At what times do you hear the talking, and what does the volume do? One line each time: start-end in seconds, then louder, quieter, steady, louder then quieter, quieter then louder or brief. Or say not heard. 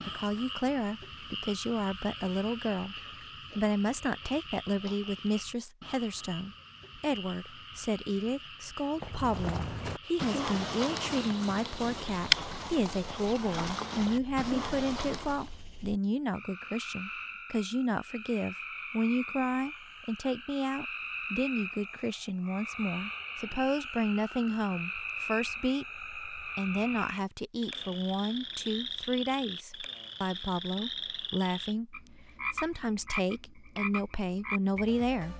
0.1-35.3 steady.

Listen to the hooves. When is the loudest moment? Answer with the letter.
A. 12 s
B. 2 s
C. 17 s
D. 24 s
A.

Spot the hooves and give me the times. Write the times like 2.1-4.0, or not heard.
8.9-15.6.